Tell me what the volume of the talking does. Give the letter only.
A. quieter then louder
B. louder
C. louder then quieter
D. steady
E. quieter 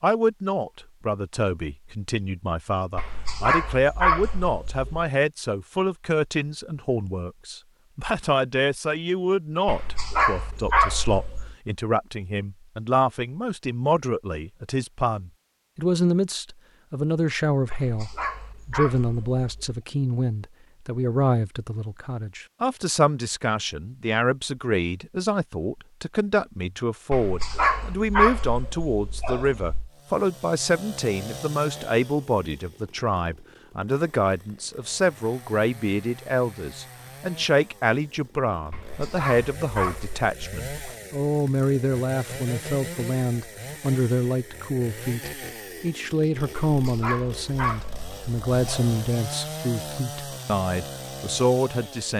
D.